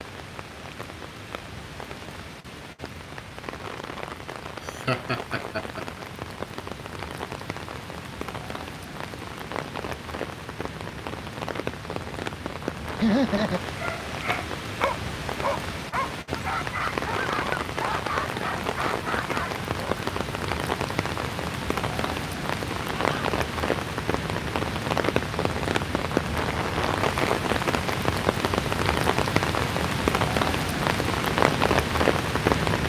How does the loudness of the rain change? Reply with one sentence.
The volume of the rain goes up.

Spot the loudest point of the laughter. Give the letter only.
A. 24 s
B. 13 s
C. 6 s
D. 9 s
B.